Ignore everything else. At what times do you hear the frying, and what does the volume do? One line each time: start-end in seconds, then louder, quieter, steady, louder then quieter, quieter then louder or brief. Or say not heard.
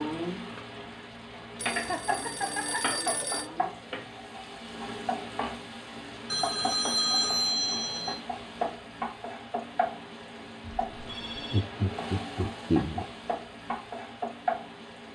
0.0-15.1 steady.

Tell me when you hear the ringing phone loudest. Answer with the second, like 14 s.
7 s.